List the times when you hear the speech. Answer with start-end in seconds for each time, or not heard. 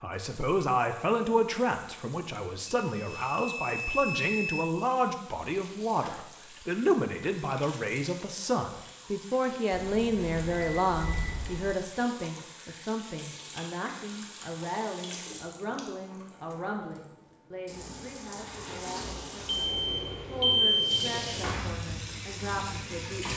0.0-23.3.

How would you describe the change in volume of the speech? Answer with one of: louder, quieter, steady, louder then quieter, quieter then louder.
quieter.